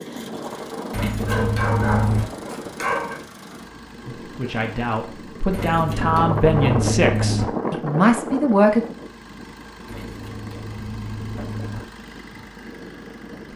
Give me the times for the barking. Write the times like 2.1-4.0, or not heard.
1.2-3.1.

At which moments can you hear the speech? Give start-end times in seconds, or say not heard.
4.0-8.8.